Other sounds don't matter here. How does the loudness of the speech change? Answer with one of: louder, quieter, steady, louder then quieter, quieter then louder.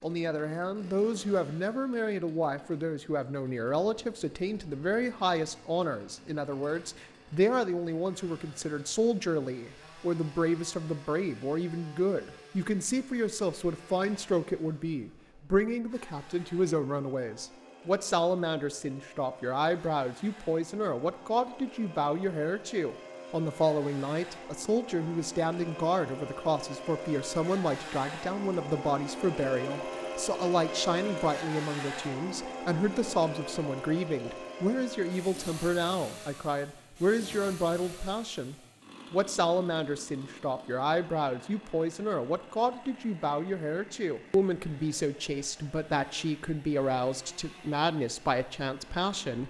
steady.